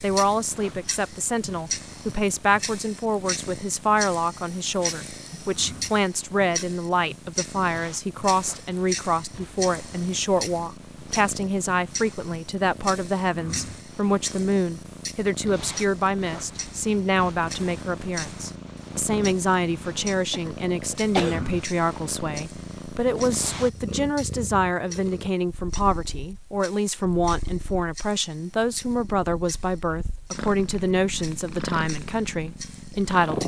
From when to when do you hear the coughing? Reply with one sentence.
The coughing can be heard from 19.9 to 21.4 s.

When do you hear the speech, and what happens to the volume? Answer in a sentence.
The speech can be heard from 0.0 to 33.4 s, at a steady volume.